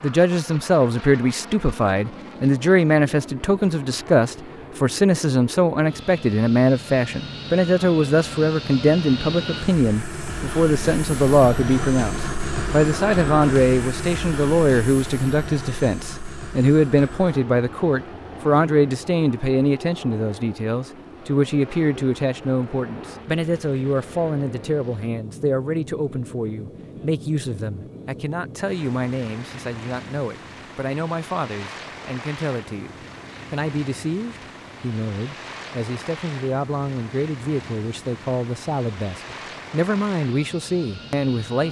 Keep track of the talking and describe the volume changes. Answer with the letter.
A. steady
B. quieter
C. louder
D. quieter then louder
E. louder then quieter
B.